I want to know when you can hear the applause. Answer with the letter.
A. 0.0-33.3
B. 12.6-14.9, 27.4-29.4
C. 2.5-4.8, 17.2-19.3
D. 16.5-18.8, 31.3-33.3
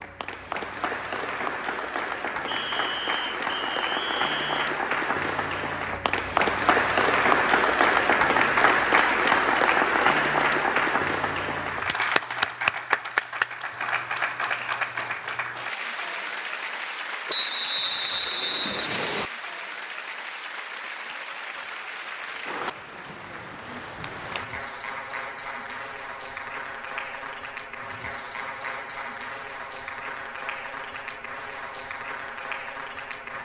A.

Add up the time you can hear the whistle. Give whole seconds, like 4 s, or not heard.
4 s.